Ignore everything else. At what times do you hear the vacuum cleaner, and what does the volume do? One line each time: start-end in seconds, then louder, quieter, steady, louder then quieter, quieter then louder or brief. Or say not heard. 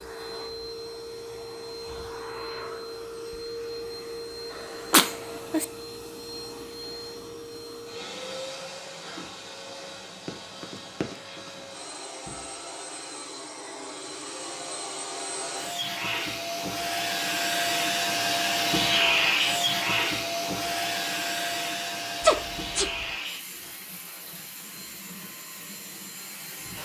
0.0-26.7 louder then quieter.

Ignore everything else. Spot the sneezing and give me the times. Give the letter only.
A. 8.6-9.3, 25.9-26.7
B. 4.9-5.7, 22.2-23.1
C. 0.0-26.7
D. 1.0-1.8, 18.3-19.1
B.